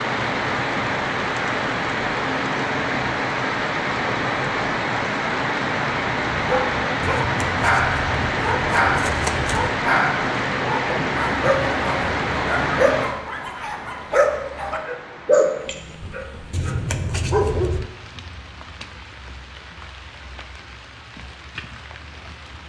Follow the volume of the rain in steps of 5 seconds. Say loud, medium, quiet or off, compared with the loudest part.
loud, loud, loud, quiet, quiet.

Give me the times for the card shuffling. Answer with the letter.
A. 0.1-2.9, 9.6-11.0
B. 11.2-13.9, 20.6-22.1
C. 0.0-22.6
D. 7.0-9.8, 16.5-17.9
D.